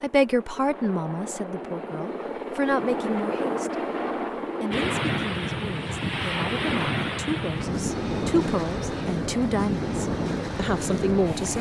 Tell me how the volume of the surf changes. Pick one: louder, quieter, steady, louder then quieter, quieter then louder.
steady.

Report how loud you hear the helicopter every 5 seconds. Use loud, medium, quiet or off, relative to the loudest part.
loud, medium, off.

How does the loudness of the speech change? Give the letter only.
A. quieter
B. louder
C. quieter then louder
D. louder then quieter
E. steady
C.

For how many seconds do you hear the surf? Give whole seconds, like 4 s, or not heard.
7 s.